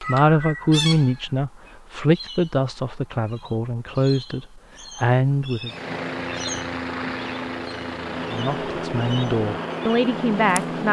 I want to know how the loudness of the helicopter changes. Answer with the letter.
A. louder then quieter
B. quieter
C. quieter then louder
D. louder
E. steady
E.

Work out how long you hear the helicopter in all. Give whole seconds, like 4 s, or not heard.
5 s.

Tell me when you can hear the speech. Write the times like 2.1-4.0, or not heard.
0.0-5.7, 8.3-10.8.